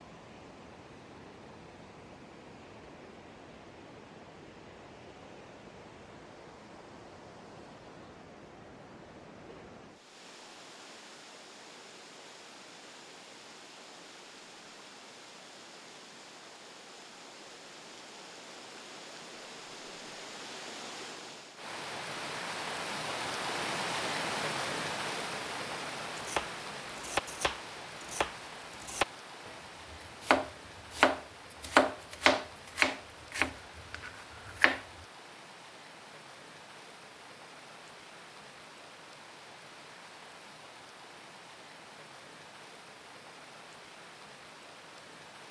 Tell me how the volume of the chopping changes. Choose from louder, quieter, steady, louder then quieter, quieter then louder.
louder then quieter.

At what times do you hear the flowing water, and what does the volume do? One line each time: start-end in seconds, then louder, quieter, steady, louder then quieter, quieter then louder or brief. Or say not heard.
0.0-45.4 louder then quieter.